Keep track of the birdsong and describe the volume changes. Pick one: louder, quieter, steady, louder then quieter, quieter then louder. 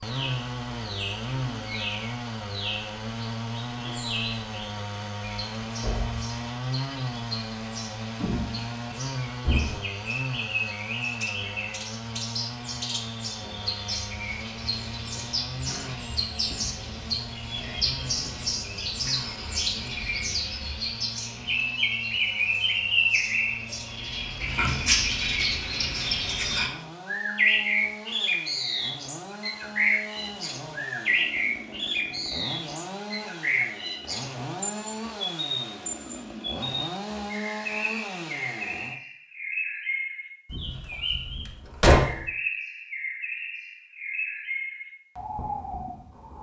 louder then quieter.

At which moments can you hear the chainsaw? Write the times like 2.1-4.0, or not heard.
0.0-39.0.